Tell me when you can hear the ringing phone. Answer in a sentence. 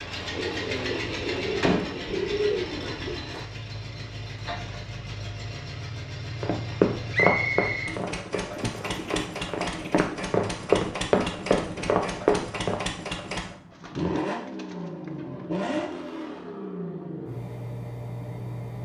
You can't hear the ringing phone here.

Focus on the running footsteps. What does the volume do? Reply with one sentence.
The loudness of the running footsteps goes down, then up.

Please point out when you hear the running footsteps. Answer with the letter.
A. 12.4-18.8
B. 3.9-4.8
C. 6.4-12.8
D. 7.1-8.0
C.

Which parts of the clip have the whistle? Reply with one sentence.
You can hear the whistle from 7.1 to 8.0 s.